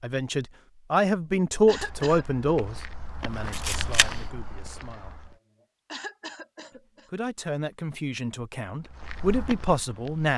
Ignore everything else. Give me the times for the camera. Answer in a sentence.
You can hear the camera from 3.5 to 4.0 s.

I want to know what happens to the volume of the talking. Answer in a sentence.
The loudness of the talking goes down, then up.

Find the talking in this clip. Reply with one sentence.
You can hear the talking from 0.0 to 5.2 s and from 7.1 to 10.3 s.